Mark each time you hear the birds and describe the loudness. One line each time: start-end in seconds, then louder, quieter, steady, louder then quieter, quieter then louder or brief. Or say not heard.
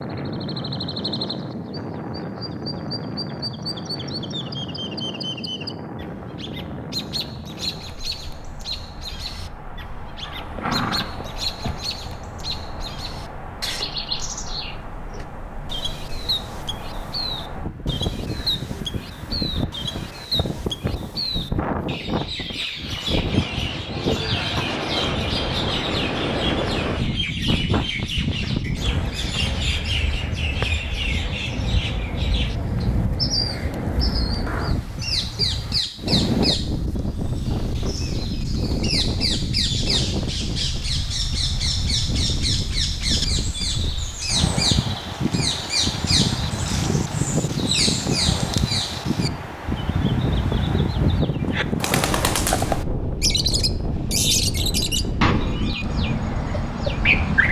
0.0-57.4 louder.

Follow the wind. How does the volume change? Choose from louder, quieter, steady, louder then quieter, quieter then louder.
louder.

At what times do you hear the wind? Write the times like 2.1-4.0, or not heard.
0.0-57.4.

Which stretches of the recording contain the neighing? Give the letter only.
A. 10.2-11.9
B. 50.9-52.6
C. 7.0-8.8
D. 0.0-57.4
A.